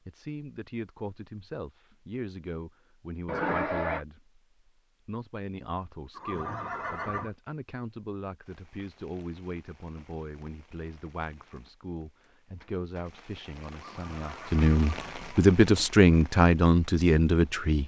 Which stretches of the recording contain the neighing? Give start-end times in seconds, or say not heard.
3.2-4.0, 6.2-7.3, 13.7-15.6.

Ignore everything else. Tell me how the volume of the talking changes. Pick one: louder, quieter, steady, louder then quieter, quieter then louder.
louder.